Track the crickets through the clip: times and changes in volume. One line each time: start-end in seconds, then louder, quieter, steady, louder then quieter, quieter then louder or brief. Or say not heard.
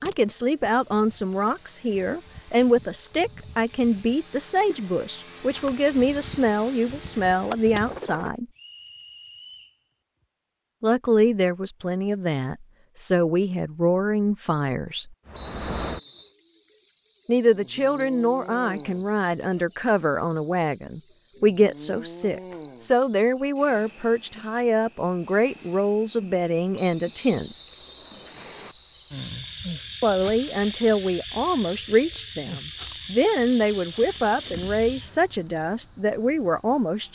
15.2-37.0 quieter.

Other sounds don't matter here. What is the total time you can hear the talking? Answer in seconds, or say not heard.
30 s.